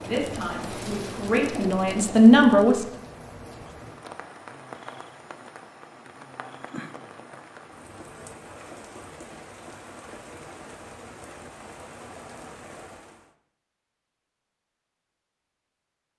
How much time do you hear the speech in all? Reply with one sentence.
You can hear the speech for 3 seconds altogether.